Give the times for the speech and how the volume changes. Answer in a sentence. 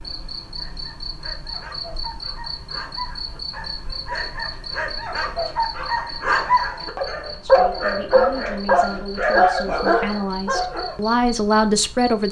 The speech can be heard from 7.3 to 12.2 s, getting louder.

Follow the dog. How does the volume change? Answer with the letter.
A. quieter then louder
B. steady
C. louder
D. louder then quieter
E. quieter
C.